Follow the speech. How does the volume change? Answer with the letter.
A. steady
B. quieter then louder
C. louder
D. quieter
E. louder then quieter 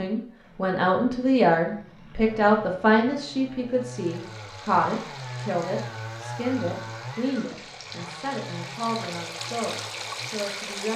D.